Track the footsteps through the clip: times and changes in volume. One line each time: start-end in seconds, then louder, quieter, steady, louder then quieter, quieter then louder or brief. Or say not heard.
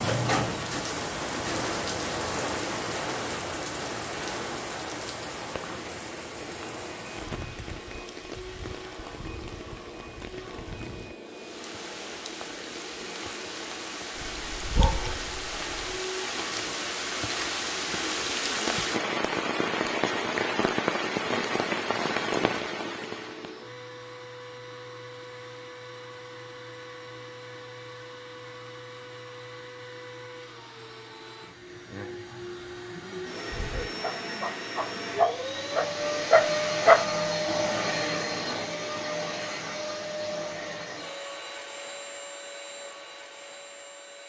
not heard.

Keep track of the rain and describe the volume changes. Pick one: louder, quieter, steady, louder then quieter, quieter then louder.
quieter then louder.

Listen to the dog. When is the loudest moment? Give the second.
37 s.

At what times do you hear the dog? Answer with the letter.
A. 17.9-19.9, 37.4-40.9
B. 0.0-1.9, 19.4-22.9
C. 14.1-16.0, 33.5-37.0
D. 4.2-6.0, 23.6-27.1
C.